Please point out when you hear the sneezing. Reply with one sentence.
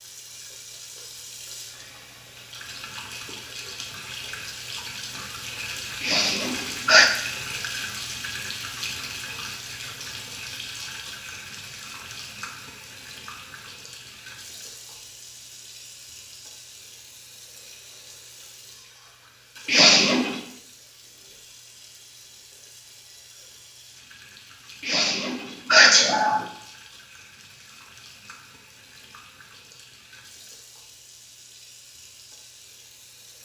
The sneezing can be heard from 6.0 to 7.1 s, from 19.6 to 20.4 s and from 24.8 to 26.4 s.